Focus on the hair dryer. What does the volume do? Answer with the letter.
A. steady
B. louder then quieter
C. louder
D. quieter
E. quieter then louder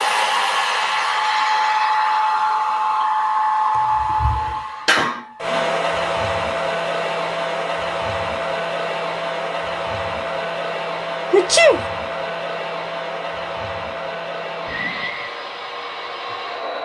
D.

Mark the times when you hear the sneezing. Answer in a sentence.
You can hear the sneezing from 4.0 to 5.7 s and from 11.3 to 11.8 s.